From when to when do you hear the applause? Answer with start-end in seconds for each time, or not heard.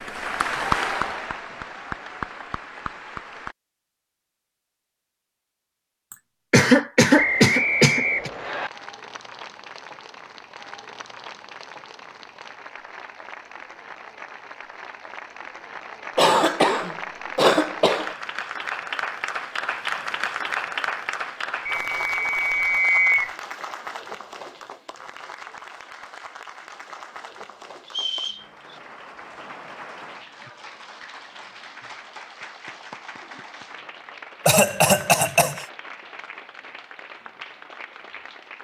0.0-3.5, 8.2-38.5.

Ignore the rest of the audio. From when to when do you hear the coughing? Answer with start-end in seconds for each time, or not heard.
6.1-8.3, 16.1-18.1, 34.5-35.6.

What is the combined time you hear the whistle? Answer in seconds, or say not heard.
4 s.